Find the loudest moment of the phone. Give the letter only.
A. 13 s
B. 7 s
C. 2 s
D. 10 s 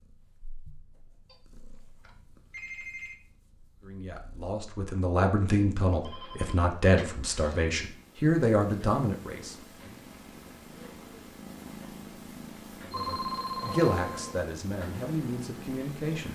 A.